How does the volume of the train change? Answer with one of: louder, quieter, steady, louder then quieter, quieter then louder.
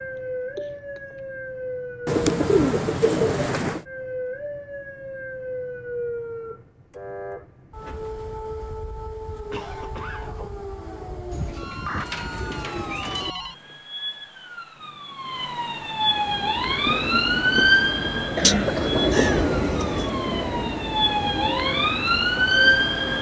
louder then quieter.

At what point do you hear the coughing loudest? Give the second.
19 s.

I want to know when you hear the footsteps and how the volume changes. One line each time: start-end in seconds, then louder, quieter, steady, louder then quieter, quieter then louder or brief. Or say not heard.
not heard.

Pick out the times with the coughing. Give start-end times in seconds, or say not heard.
0.6-1.2, 9.5-10.6, 18.2-19.1.